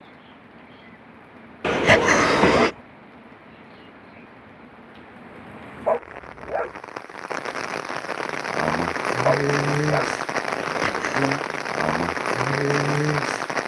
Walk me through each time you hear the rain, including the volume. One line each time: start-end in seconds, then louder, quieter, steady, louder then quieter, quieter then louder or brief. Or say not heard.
0.0-13.6 louder.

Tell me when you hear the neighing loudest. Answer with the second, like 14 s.
2 s.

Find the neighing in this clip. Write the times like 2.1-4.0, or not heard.
1.6-2.7, 10.6-11.3.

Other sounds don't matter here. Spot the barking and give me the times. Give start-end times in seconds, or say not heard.
1.9-2.8, 5.8-6.7, 9.2-10.1.